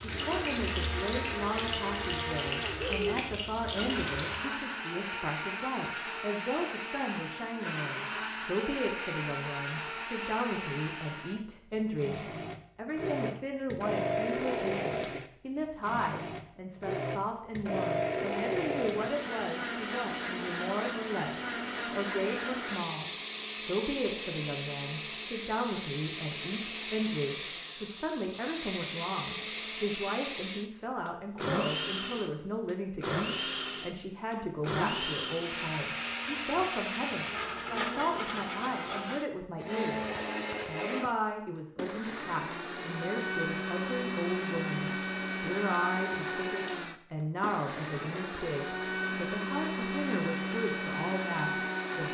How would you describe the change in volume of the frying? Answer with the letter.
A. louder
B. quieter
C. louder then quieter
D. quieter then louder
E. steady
E.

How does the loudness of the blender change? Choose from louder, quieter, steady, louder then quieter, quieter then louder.
steady.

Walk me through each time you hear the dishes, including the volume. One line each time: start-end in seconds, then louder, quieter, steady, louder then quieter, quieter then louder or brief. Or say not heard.
not heard.